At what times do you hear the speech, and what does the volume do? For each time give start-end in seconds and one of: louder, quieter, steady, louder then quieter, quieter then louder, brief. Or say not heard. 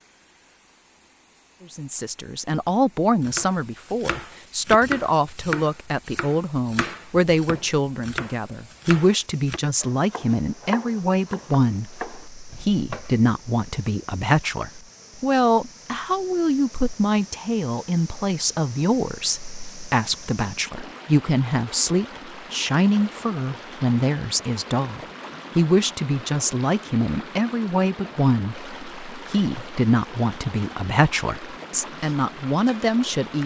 1.7-33.4 steady.